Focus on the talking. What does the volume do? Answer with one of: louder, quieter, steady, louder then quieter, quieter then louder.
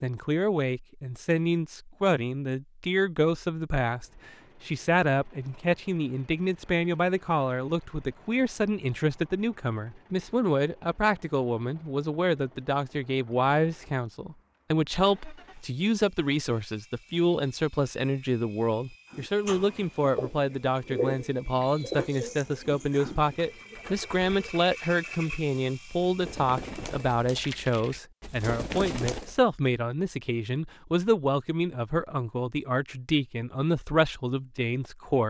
steady.